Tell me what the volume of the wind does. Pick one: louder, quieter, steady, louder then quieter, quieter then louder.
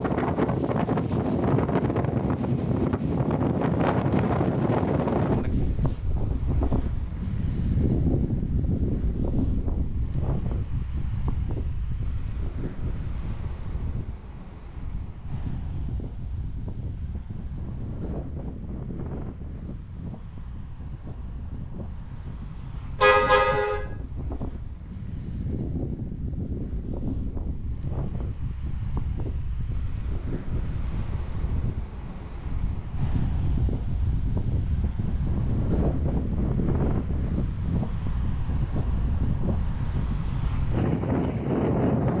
quieter then louder.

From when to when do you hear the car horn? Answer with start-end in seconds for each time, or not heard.
23.0-23.8.